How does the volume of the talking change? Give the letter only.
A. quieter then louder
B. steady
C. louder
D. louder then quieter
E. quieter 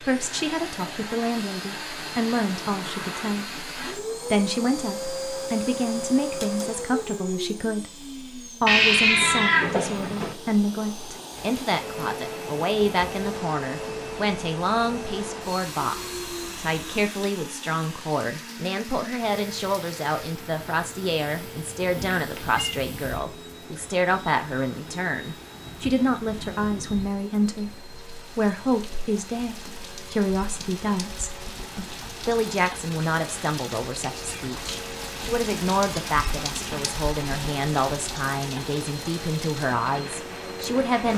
B.